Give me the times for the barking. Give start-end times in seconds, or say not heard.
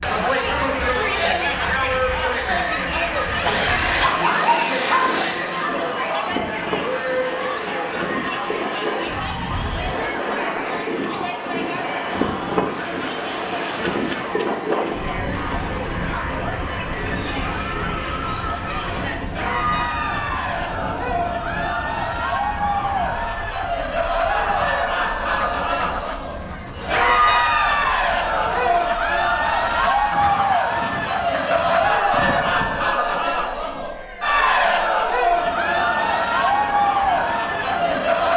3.4-5.4.